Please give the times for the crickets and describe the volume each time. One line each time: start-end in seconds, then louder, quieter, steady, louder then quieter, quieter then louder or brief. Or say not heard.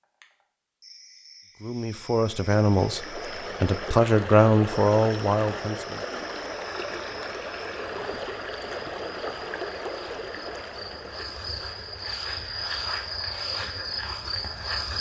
0.0-14.9 louder.